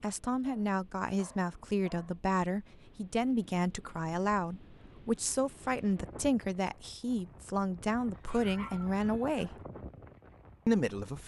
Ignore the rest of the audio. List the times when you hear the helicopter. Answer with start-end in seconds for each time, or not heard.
not heard.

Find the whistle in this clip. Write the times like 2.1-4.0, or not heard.
not heard.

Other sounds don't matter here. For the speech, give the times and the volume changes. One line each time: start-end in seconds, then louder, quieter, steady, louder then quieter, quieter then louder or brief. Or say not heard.
0.0-9.6 steady
10.7-11.2 brief.